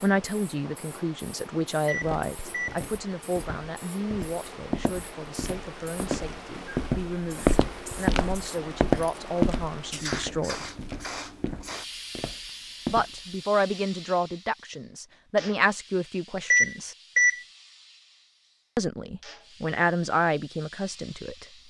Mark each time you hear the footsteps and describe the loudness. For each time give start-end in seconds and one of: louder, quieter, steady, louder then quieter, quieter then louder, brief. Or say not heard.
2.0-13.2 louder then quieter.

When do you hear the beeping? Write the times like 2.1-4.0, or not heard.
1.9-2.8, 16.5-17.4.